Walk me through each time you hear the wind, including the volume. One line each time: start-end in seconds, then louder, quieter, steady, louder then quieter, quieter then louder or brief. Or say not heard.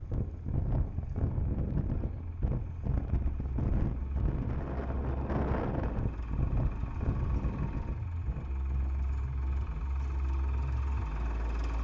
0.0-11.7 quieter.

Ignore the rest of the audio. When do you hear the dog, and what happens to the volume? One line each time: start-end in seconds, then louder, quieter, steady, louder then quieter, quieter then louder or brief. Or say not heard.
not heard.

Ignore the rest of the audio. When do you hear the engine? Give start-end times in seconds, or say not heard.
0.0-11.7.